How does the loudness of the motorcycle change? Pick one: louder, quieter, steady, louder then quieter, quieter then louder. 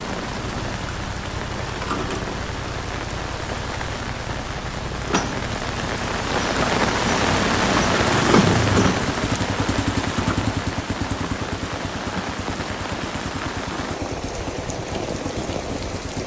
louder then quieter.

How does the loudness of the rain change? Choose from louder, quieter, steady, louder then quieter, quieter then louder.
louder then quieter.